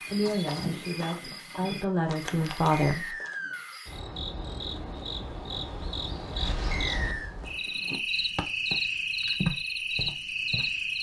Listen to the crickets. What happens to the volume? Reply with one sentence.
The loudness of the crickets goes up.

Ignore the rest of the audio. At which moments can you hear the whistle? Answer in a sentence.
The whistle can be heard from 2.7 to 3.8 s and from 6.7 to 7.3 s.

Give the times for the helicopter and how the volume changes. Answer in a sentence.
The helicopter can't be heard in this clip.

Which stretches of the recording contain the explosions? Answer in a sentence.
You can hear the explosions from 6.3 to 7.3 s.